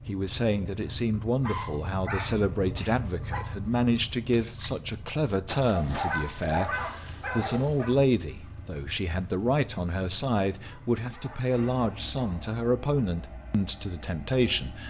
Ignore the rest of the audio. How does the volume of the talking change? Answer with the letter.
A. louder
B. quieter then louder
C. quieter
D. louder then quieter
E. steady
E.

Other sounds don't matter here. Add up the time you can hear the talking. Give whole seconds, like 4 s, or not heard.
15 s.